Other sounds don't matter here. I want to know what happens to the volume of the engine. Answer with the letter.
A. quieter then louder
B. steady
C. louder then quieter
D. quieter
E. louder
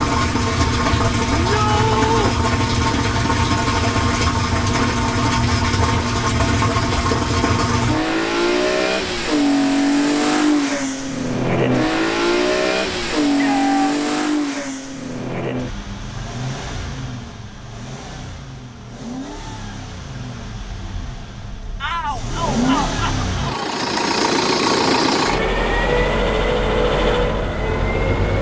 A.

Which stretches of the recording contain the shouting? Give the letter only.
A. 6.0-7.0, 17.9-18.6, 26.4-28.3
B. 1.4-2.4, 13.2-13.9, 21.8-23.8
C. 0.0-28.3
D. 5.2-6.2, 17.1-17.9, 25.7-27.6
B.